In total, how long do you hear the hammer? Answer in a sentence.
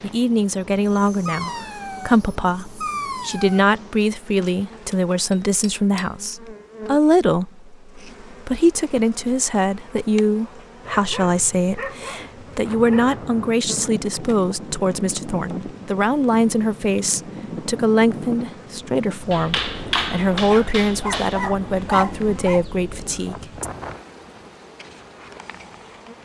You can hear the hammer for 4 seconds altogether.